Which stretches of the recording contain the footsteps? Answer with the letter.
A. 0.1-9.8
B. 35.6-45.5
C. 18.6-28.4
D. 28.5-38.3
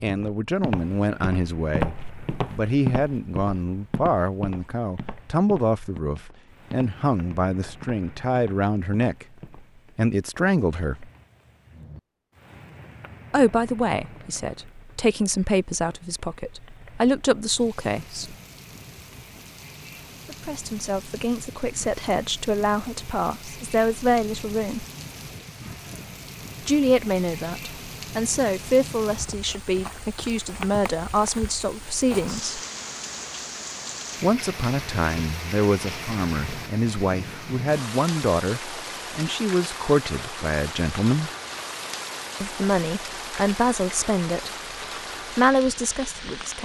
A.